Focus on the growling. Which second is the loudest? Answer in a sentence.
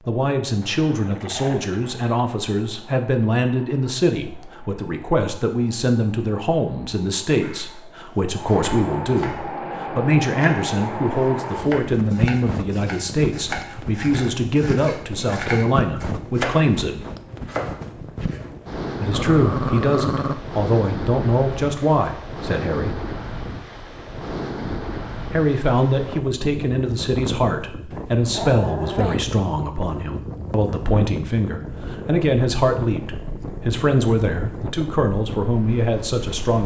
The loudest moment of the growling is at 20 seconds.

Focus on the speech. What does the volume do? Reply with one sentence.
The volume of the speech stays about the same.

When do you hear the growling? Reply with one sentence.
The growling can be heard from 0.6 to 2.2 s, from 19.1 to 20.4 s and from 27.9 to 29.2 s.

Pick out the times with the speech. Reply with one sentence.
You can hear the speech from 0.1 to 17.1 s, from 19.0 to 22.9 s and from 25.3 to 36.6 s.